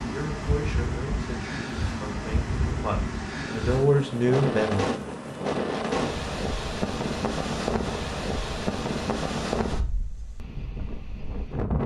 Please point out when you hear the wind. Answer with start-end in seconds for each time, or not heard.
0.0-11.8.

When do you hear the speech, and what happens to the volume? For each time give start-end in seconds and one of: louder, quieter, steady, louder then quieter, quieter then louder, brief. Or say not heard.
0.0-4.8 quieter then louder.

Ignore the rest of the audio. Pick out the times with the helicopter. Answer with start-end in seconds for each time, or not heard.
not heard.